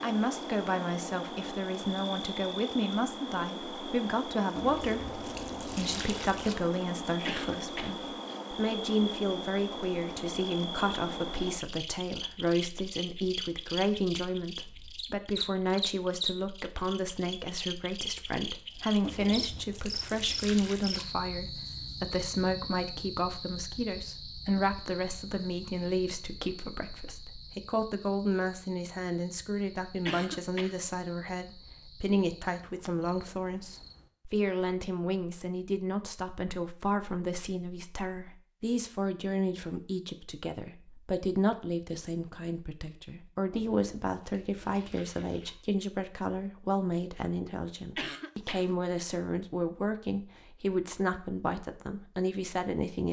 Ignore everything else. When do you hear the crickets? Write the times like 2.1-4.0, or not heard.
0.0-34.1.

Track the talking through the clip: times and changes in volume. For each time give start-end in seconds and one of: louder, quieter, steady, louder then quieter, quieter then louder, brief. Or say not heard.
0.0-53.0 steady.